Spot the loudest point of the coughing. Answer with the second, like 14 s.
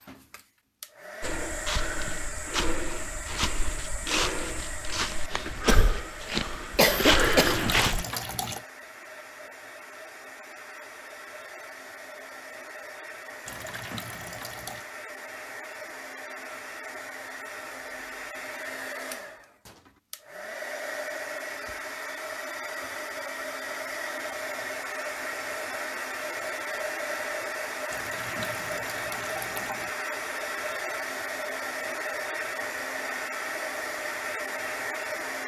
7 s.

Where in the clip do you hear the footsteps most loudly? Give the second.
7 s.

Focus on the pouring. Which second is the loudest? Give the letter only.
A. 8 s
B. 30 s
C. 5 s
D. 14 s
A.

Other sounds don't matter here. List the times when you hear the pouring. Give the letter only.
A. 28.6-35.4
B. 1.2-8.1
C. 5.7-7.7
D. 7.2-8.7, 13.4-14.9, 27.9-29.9
D.